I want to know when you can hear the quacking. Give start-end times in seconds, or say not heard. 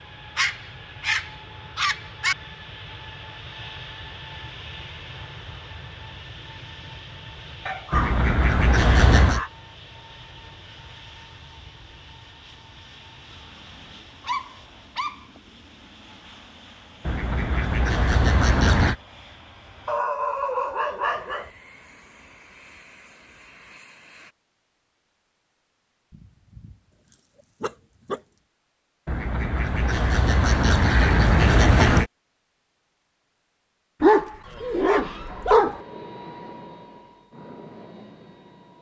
7.9-9.4, 17.1-18.9, 29.1-32.1.